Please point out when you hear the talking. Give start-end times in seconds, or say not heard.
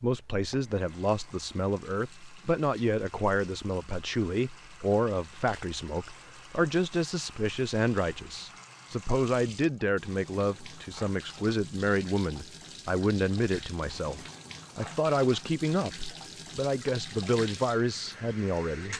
0.0-18.9.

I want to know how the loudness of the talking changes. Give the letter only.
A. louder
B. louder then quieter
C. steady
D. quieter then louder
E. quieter
C.